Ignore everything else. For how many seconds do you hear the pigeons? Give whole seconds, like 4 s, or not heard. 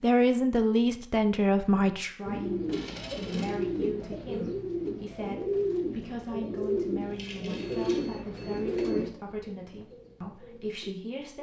9 s.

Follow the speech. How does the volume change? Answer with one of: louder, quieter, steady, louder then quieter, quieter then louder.
quieter.